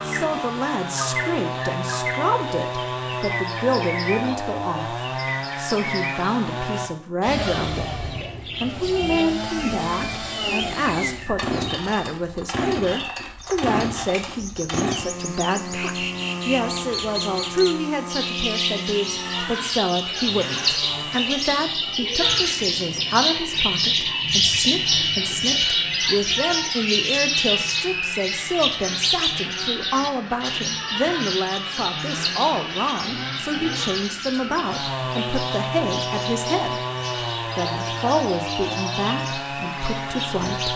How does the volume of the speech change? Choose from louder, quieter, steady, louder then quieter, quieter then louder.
steady.